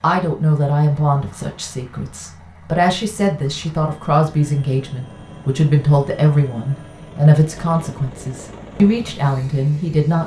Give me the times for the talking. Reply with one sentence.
You can hear the talking from 0.0 to 10.2 s.